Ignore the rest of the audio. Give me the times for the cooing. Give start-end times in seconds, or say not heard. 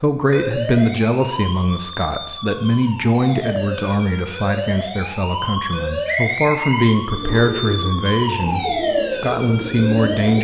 7.1-10.4.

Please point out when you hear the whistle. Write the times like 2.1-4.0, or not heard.
6.0-7.7.